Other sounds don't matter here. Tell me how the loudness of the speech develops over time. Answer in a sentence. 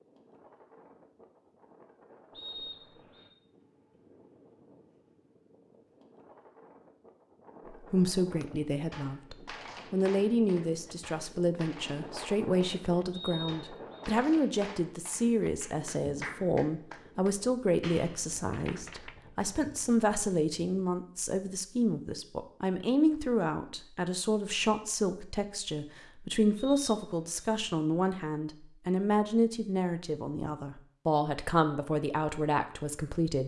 The loudness of the speech stays about the same.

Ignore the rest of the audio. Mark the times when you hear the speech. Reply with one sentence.
The speech can be heard from 7.7 to 33.4 s.